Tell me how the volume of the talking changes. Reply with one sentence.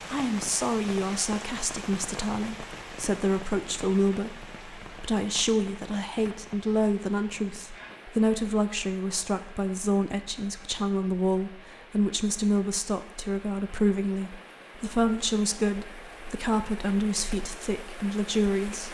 The volume of the talking stays about the same.